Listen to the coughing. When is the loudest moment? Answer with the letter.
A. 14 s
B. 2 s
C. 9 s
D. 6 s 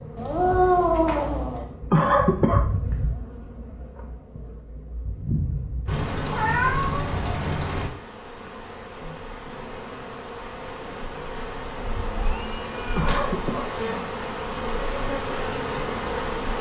B.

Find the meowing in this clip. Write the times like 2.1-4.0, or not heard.
0.1-1.6, 5.8-7.9, 12.2-13.2.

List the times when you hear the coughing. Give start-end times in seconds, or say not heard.
1.9-2.6, 12.9-13.7.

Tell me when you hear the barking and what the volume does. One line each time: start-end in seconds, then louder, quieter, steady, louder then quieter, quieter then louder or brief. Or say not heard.
not heard.